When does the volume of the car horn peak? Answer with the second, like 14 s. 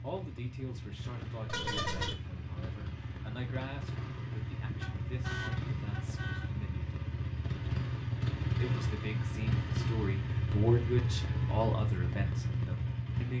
2 s.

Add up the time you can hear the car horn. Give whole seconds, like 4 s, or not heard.
3 s.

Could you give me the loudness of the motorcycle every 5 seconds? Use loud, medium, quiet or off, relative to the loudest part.
medium, loud, loud.